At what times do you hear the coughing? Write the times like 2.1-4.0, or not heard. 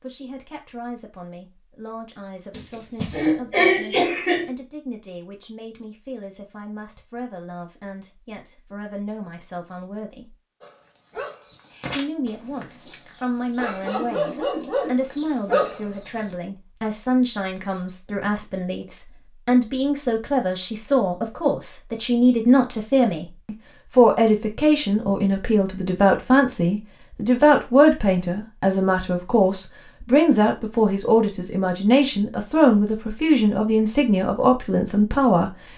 2.5-4.5.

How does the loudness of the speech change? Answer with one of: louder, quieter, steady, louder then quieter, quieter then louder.
louder.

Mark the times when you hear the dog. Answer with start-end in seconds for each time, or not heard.
10.6-16.2.